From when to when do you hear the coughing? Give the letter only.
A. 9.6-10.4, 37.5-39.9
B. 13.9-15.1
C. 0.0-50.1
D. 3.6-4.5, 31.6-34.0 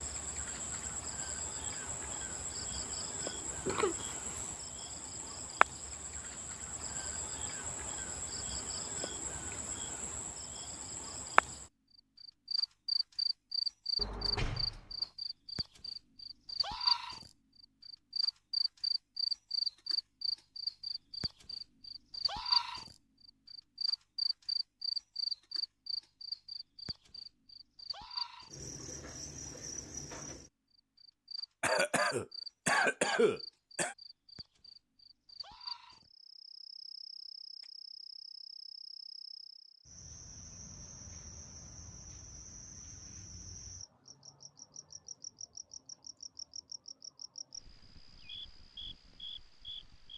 D.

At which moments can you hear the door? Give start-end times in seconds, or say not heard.
13.9-15.1.